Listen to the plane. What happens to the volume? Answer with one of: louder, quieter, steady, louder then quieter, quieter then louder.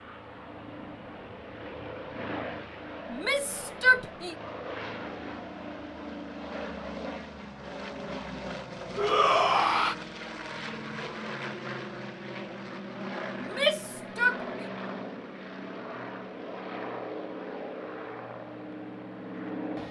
steady.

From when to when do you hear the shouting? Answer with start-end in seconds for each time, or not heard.
3.1-4.3, 8.9-9.9, 13.4-14.4.